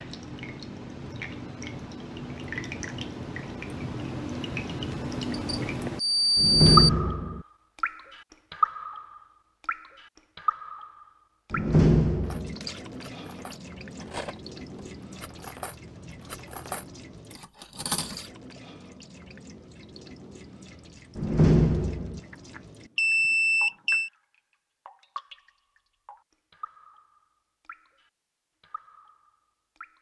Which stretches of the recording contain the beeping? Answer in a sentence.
You can hear the beeping from 4.9 to 6.9 s and from 22.3 to 24.1 s.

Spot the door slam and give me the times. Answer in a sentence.
The door slam can be heard from 6.3 to 7.5 s, from 11.5 to 12.6 s and from 21.1 to 22.2 s.